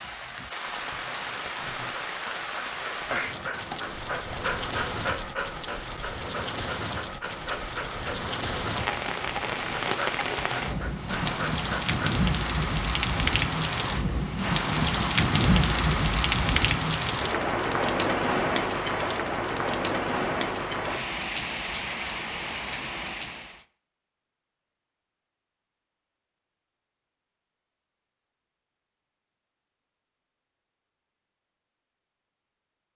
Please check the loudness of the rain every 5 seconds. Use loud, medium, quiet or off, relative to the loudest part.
medium, medium, loud, loud, medium, off, off.